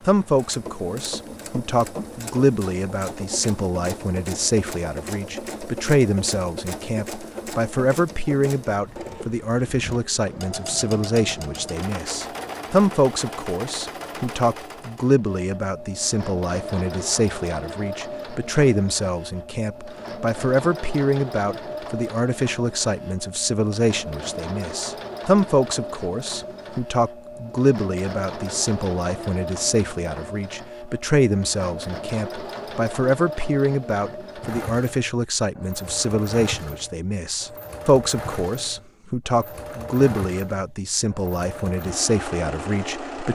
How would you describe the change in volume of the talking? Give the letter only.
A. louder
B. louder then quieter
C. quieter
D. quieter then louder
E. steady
E.